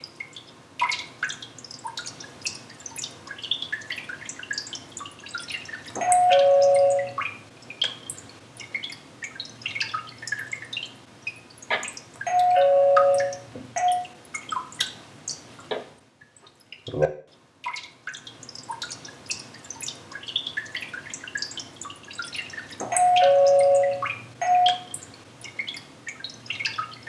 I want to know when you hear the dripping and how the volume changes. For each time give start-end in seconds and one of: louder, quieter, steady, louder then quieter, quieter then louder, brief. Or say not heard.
0.0-27.0 steady.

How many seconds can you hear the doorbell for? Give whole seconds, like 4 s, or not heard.
5 s.